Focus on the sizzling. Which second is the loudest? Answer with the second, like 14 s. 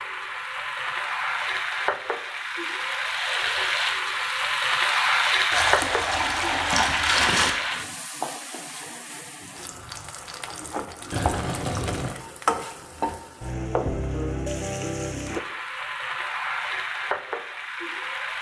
5 s.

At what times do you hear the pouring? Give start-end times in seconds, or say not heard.
5.5-7.5, 11.1-12.2.